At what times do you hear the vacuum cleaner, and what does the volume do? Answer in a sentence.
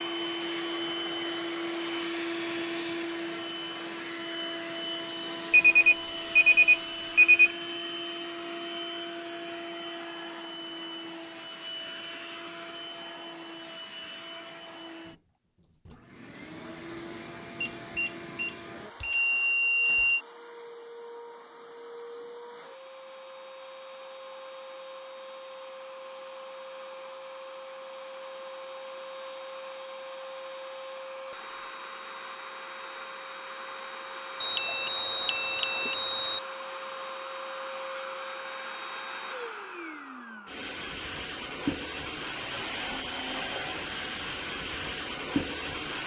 The vacuum cleaner can be heard from 0.0 to 46.0 s, getting quieter then louder.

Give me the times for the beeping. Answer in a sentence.
You can hear the beeping from 5.5 to 7.5 s, from 17.6 to 20.2 s and from 34.4 to 36.4 s.